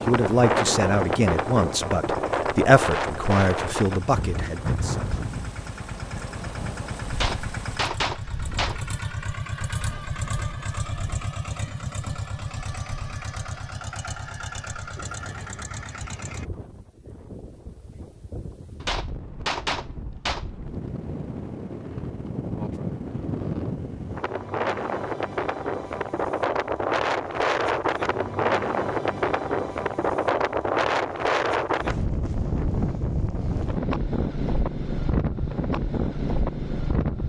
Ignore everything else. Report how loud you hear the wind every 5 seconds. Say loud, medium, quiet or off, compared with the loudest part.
loud, quiet, quiet, quiet, medium, loud, loud, loud.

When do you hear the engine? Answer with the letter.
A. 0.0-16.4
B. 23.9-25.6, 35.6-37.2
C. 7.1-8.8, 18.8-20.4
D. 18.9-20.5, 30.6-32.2
A.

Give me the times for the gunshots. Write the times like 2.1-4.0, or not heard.
7.1-8.8, 18.8-20.4.